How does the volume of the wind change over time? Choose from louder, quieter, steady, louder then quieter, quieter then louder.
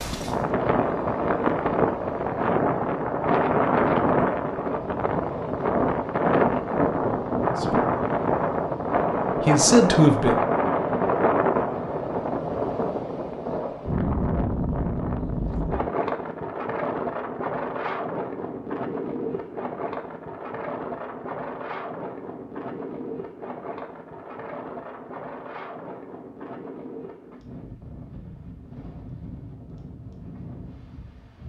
quieter.